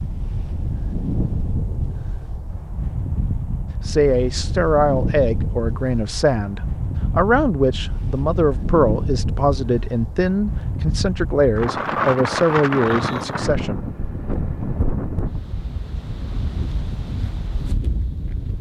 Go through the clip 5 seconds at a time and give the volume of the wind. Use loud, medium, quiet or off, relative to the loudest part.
loud, loud, loud, medium.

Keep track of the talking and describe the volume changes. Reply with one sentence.
The volume of the talking stays about the same.